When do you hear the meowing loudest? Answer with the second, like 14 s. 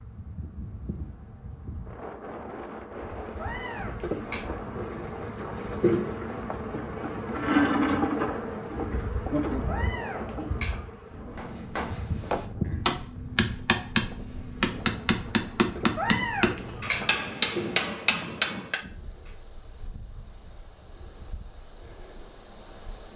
16 s.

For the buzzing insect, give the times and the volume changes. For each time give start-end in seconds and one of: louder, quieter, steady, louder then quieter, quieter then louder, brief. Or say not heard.
0.0-18.7 louder then quieter.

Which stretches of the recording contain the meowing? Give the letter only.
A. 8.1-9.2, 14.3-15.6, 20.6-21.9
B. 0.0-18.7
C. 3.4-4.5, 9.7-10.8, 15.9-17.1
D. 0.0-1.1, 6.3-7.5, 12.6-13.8
C.